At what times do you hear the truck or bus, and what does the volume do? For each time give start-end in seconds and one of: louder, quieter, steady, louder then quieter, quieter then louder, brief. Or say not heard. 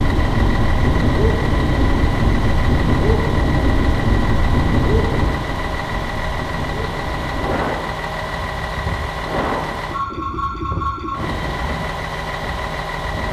0.0-13.2 steady.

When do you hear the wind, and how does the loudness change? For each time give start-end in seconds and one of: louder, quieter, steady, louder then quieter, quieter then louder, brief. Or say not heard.
0.0-13.2 quieter.